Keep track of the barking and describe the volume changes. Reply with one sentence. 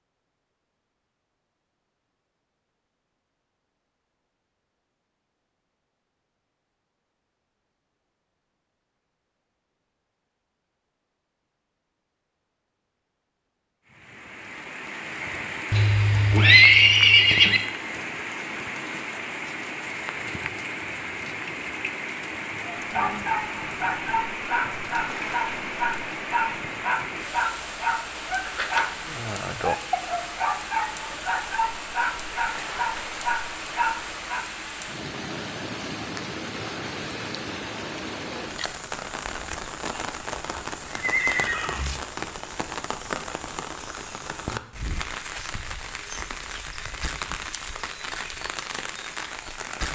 The loudness of the barking stays about the same.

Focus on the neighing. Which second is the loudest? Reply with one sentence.
The loudest moment of the neighing is at 17 seconds.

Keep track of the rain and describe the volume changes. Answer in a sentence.
The loudness of the rain stays about the same.